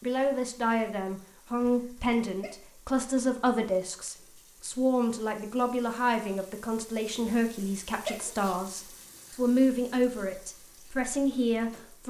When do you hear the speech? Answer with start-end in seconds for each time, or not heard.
0.0-12.0.